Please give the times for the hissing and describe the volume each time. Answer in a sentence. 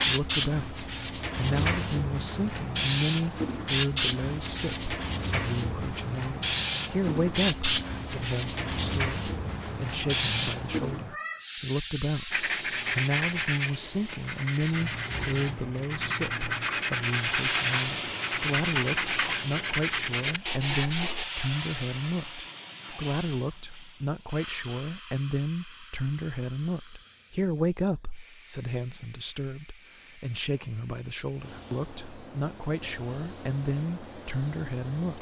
You can hear the hissing from 0.0 to 35.1 s, getting quieter.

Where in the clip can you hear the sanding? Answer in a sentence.
You can hear the sanding from 12.3 to 21.2 s.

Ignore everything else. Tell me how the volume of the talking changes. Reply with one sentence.
The volume of the talking stays about the same.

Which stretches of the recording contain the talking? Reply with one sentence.
The talking can be heard from 0.0 to 35.1 s.